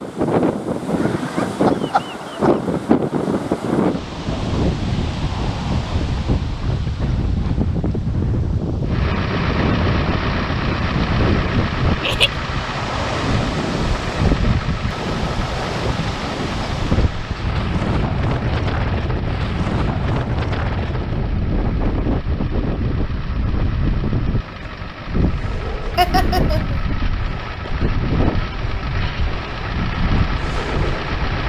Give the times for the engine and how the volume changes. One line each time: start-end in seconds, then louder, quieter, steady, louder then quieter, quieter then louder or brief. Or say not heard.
8.8-31.4 quieter then louder.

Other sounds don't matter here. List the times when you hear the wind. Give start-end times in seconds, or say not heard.
0.0-31.4.